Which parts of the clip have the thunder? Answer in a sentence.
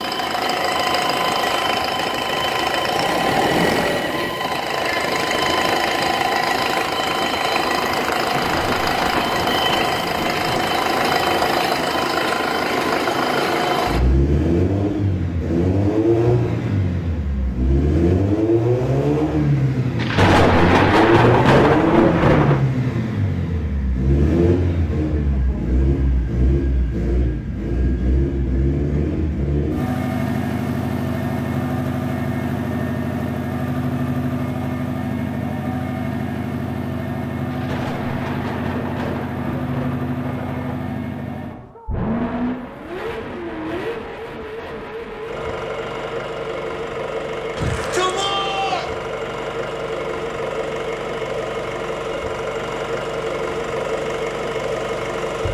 You can hear the thunder from 8.2 to 11.6 s, from 19.9 to 22.6 s and from 37.5 to 41.8 s.